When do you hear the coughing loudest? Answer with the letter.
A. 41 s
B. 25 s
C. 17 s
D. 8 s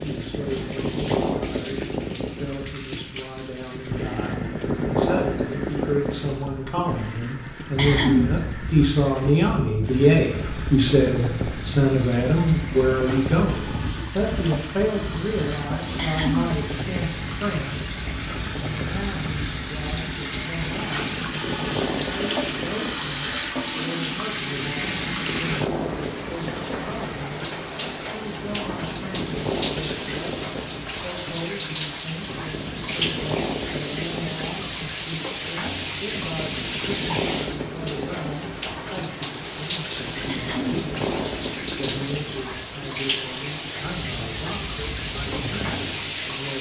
D.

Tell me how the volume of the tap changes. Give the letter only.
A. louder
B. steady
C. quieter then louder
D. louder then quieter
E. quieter
A.